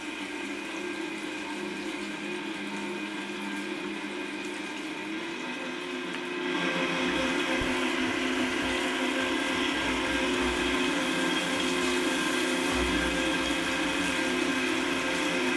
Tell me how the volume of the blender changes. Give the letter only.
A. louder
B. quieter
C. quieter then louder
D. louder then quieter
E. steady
A.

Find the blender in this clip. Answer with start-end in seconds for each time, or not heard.
0.0-15.5.